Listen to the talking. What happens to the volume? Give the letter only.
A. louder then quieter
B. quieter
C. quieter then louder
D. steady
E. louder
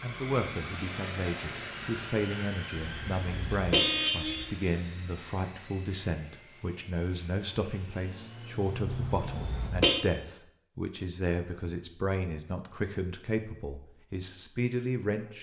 D.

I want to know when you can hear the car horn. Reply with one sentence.
You can hear the car horn from 2.8 to 4.5 s and from 8.8 to 9.9 s.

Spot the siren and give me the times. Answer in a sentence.
You can't hear the siren here.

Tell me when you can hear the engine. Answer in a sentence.
The engine can be heard from 0.0 to 9.7 s.